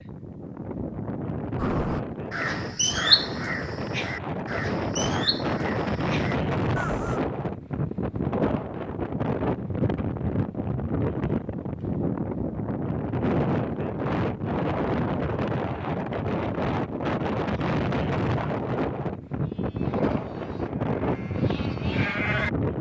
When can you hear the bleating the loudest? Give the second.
22 s.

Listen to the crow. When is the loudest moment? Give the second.
3 s.